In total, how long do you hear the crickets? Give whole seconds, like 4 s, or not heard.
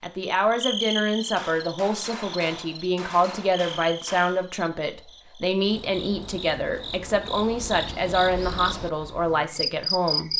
10 s.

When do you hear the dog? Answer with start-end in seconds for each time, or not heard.
not heard.